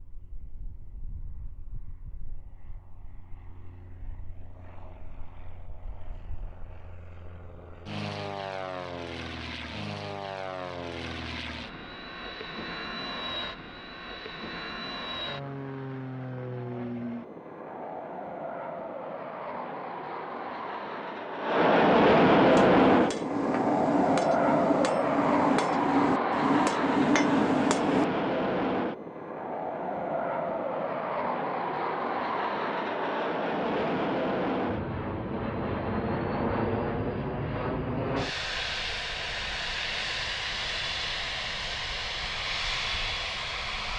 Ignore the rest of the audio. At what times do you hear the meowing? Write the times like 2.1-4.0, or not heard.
not heard.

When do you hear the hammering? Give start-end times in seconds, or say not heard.
22.5-28.1.